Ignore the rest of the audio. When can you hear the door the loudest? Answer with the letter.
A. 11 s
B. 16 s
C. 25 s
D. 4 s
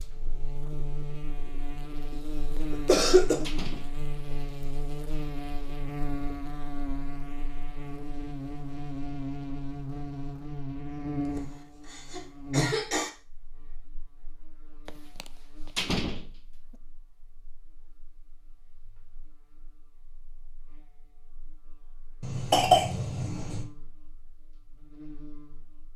B.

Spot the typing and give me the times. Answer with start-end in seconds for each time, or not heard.
not heard.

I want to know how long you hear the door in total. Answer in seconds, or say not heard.
3 s.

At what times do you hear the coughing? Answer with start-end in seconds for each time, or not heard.
2.1-3.5, 11.3-13.1, 22.2-23.6.